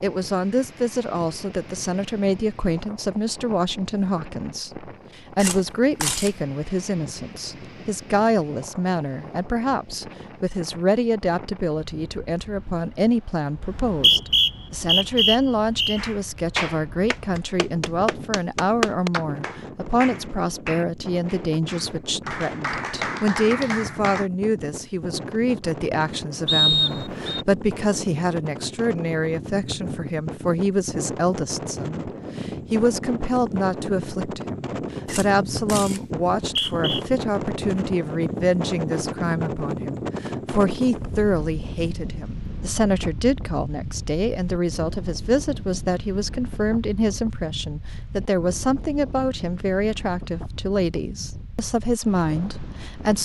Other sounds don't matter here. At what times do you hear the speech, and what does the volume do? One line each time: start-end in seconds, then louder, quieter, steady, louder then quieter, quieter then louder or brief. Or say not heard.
0.0-53.2 steady.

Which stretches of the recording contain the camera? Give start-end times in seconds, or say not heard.
5.3-6.3, 35.0-36.0.